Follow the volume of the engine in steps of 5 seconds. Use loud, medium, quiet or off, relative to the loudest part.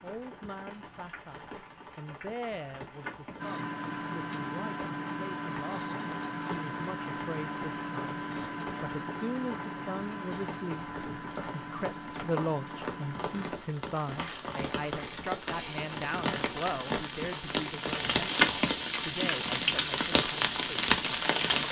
loud, loud, medium, off, off.